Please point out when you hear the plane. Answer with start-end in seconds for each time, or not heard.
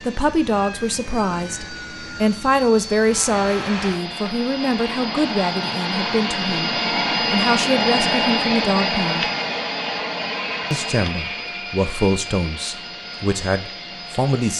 0.0-14.5.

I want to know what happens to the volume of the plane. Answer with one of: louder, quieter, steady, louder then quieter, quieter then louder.
louder then quieter.